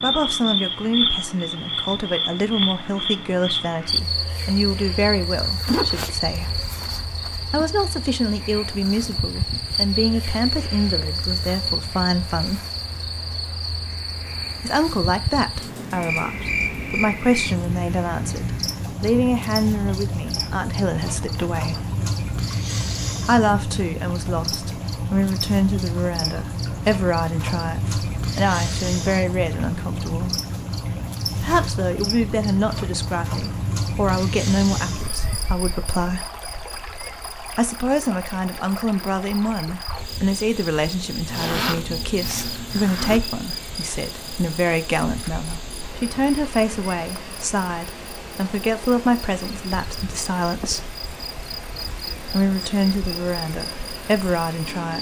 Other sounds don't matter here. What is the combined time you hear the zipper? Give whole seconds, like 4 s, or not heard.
5 s.